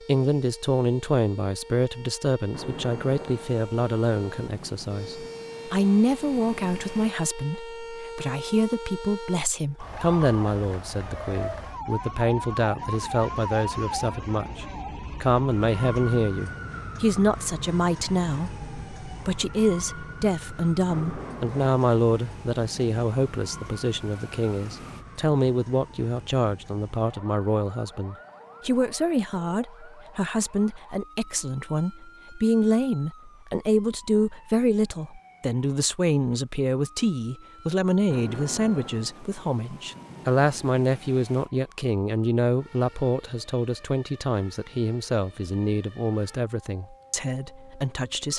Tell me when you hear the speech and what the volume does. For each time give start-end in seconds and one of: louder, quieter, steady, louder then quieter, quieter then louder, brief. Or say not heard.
0.1-48.3 steady.